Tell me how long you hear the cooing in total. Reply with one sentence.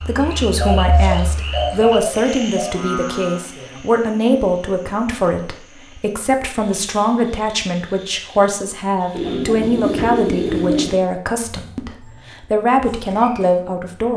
You can hear the cooing for 4 seconds altogether.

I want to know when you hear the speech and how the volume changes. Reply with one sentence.
The speech can be heard from 0.0 to 14.1 s, at a steady volume.